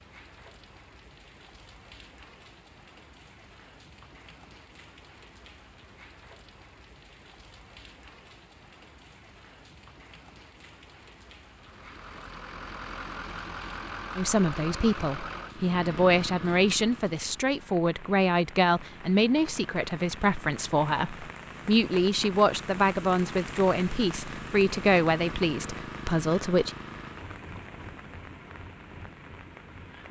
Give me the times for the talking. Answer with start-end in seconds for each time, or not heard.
14.2-26.7.